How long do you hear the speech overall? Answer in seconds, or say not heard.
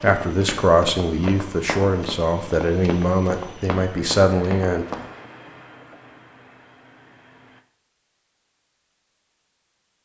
5 s.